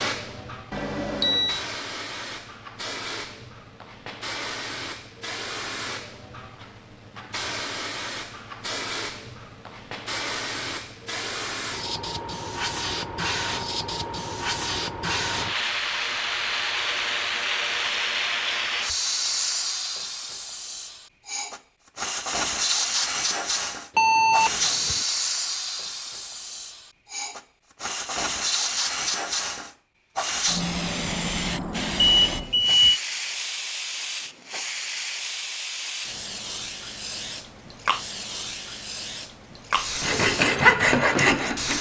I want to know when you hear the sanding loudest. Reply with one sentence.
The volume of the sanding peaks at 41 seconds.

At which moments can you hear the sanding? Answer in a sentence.
The sanding can be heard from 40.0 to 41.7 s.